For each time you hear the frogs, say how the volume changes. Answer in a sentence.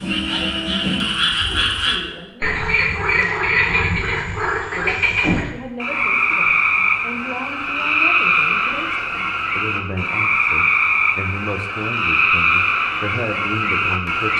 The frogs can be heard from 0.0 to 14.3 s, at a steady volume.